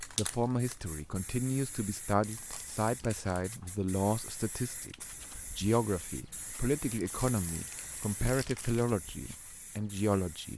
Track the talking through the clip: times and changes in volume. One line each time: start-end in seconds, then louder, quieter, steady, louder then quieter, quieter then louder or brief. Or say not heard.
0.0-10.5 steady.